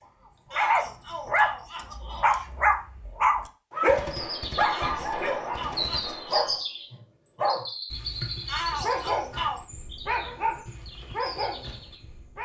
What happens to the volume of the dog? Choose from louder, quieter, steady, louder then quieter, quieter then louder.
quieter.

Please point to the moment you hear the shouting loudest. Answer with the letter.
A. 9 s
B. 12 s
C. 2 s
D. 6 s
A.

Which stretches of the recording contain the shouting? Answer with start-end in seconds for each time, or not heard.
0.5-2.5, 4.7-6.7, 8.4-9.6.